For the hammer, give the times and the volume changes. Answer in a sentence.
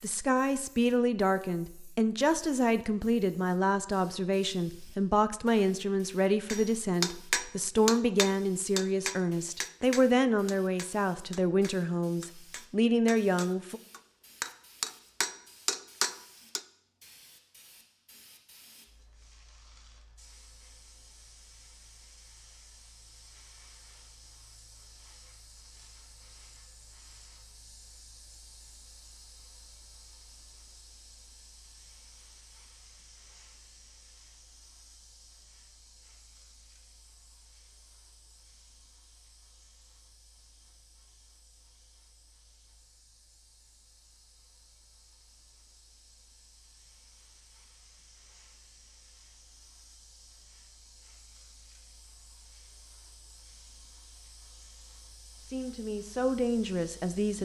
The hammer can be heard from 6.5 to 16.6 s, getting quieter then louder.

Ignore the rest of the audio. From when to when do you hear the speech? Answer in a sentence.
You can hear the speech from 0.0 to 13.8 s and from 55.5 to 57.4 s.